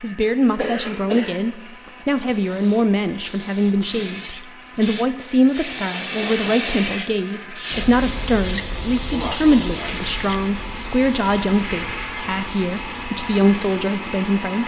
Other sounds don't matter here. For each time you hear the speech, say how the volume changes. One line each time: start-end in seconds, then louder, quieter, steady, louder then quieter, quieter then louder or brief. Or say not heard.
0.0-14.6 steady.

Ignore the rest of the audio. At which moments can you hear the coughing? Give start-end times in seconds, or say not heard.
0.5-1.4, 8.9-10.1.